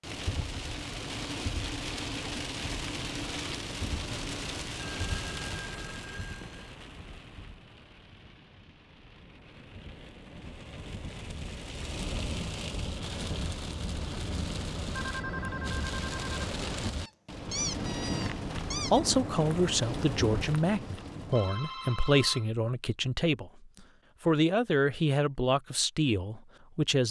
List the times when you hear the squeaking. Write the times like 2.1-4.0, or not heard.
17.0-19.0.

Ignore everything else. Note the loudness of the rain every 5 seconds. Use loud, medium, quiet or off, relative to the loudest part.
loud, medium, loud, loud, loud, off.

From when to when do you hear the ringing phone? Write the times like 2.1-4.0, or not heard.
5.0-6.7, 14.9-16.4, 21.3-22.6.